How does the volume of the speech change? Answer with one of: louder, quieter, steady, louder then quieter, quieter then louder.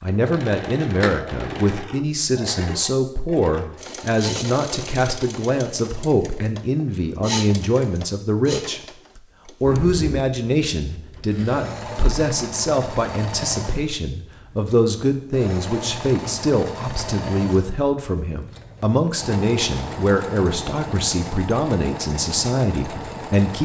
steady.